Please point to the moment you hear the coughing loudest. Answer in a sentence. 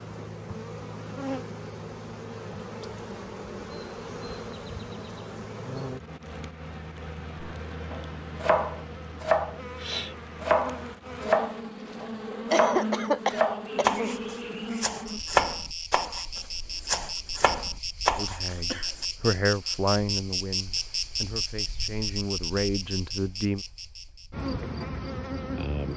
The volume of the coughing peaks at 13 seconds.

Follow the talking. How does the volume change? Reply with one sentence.
The volume of the talking goes down, then up.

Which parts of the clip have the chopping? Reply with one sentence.
You can hear the chopping from 7.4 to 19.1 s.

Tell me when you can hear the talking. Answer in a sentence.
The talking can be heard from 18.1 to 23.6 s.